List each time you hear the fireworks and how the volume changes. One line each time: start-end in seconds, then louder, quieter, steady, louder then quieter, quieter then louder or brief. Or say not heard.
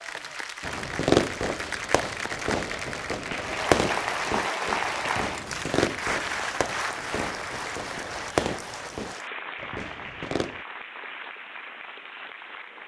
0.6-10.7 quieter.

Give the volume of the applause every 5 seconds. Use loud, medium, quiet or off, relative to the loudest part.
loud, loud, medium.